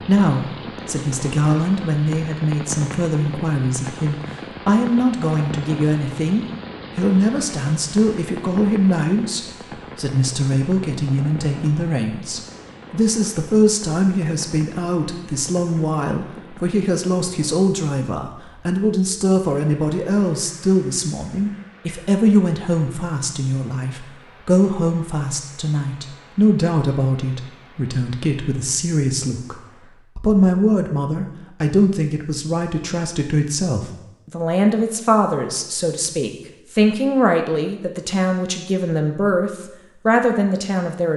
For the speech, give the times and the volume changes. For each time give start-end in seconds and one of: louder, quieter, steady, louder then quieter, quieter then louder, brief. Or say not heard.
0.0-41.1 steady.